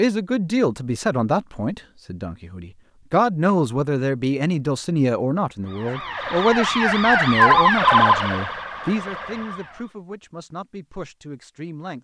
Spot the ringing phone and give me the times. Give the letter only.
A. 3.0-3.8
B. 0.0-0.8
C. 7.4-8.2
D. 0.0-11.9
C.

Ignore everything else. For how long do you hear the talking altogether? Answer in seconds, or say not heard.
12 s.